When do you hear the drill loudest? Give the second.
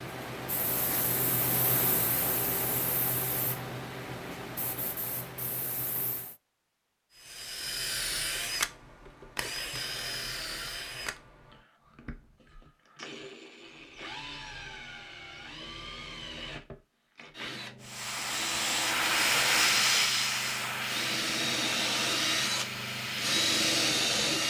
24 s.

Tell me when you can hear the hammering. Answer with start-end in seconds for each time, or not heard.
not heard.